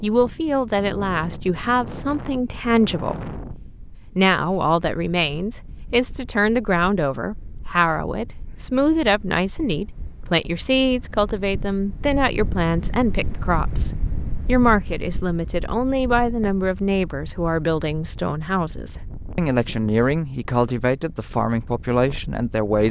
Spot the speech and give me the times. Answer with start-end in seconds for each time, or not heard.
0.0-3.2, 4.2-22.8.